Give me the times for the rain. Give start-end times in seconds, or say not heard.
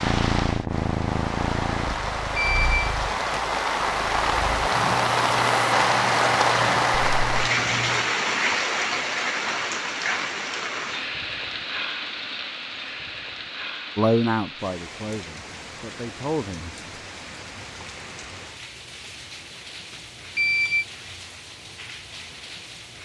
0.0-22.9.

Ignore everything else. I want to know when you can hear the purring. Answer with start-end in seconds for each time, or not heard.
0.0-8.2.